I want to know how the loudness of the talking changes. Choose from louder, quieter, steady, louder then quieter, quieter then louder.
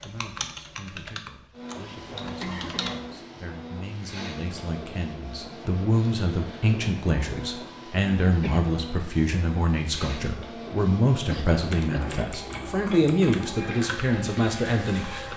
louder.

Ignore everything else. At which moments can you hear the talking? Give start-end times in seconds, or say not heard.
0.0-15.3.